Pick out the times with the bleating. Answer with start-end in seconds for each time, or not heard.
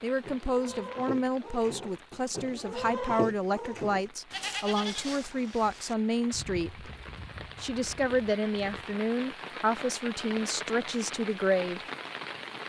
0.2-8.9.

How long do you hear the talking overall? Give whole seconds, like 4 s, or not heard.
11 s.